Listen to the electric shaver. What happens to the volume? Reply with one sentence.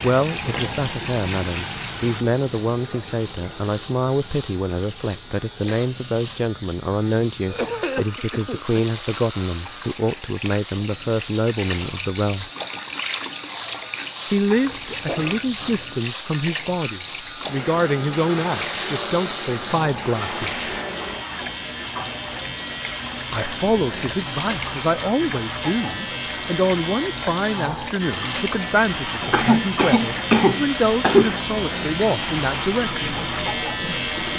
The volume of the electric shaver goes up.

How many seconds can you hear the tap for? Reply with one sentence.
You can hear the tap for 34 seconds altogether.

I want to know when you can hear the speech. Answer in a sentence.
You can hear the speech from 0.0 to 12.4 s, from 14.2 to 20.6 s and from 23.3 to 33.0 s.